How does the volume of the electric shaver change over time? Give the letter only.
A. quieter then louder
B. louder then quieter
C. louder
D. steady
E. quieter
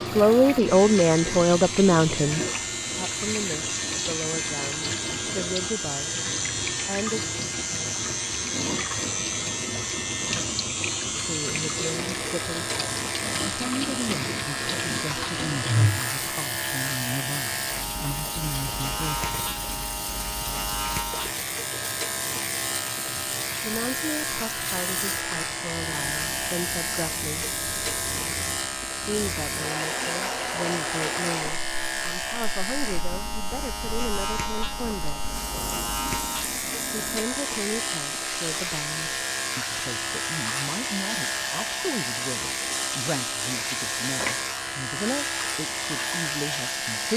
D.